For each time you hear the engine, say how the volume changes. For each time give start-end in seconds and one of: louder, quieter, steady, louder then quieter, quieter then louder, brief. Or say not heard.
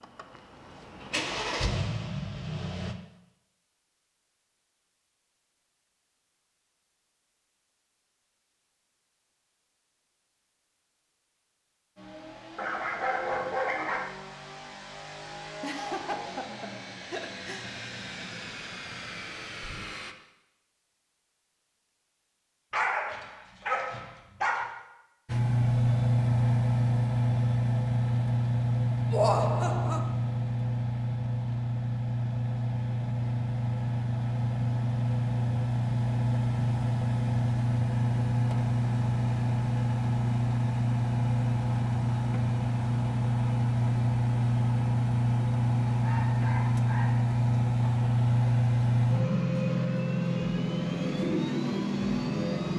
0.0-3.0 brief
11.9-20.1 louder
25.2-52.7 steady.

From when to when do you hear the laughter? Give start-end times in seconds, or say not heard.
15.6-17.7, 29.1-30.1.